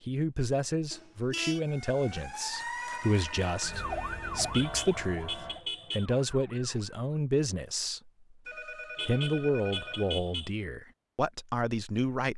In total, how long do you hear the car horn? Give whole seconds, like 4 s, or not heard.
4 s.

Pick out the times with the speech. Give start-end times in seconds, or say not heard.
0.1-8.1, 9.1-12.3.